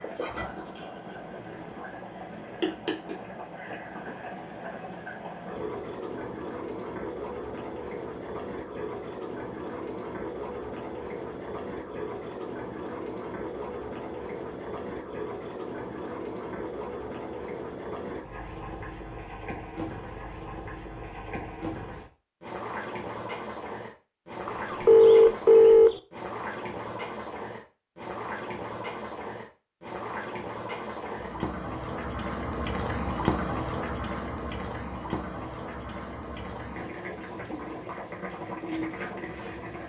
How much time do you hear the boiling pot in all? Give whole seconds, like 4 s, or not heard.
40 s.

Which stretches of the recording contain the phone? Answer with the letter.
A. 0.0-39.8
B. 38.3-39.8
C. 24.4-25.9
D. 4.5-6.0
C.